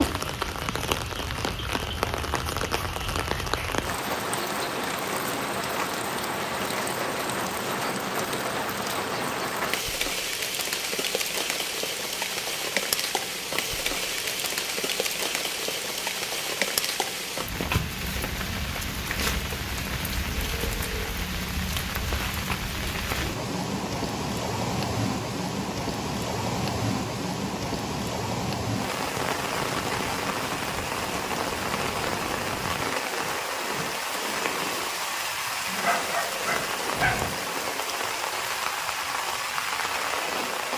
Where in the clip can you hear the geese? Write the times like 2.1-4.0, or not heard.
not heard.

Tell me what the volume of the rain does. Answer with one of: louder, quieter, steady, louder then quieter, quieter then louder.
steady.